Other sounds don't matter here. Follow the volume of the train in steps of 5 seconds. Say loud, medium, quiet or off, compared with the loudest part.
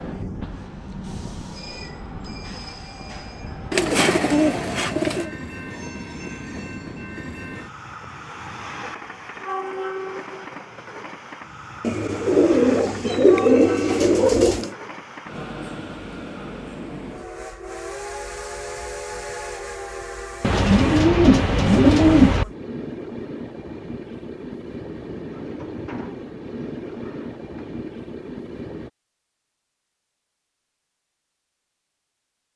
loud, loud, loud, loud, loud, loud, off.